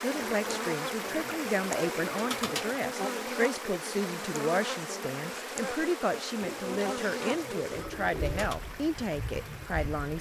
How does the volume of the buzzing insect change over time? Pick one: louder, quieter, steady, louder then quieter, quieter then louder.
quieter.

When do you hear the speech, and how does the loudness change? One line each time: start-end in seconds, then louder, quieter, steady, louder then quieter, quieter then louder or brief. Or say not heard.
0.0-10.1 steady.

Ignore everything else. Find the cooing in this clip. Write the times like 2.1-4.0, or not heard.
0.2-2.9, 6.4-8.6.